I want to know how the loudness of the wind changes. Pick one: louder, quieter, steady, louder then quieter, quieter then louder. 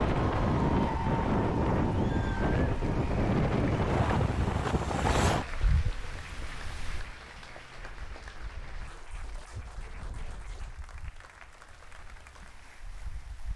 quieter.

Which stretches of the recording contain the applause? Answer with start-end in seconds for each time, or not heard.
0.0-13.5.